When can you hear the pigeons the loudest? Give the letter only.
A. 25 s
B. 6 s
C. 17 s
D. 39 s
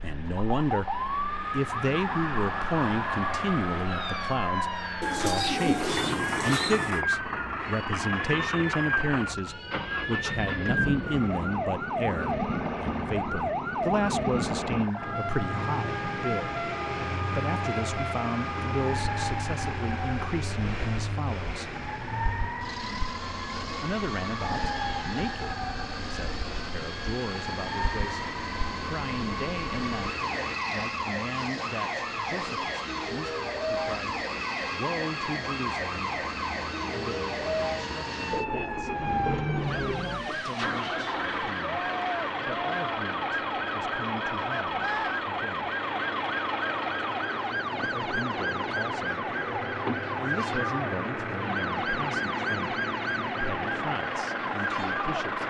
B.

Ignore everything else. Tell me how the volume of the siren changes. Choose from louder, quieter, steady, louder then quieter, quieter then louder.
steady.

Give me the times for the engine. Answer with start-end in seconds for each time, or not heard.
0.0-55.4.